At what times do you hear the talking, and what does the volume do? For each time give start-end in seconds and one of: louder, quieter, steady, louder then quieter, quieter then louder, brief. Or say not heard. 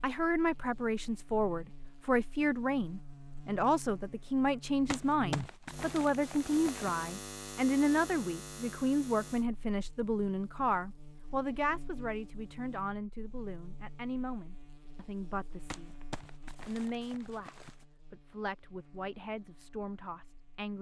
0.0-15.9 quieter
16.6-20.7 quieter then louder.